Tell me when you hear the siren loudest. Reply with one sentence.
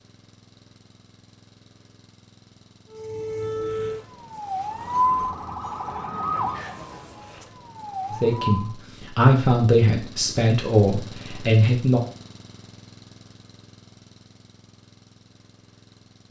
The volume of the siren peaks at 5 seconds.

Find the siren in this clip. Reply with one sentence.
You can hear the siren from 2.9 to 8.8 s.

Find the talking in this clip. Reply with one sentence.
You can hear the talking from 8.1 to 12.0 s.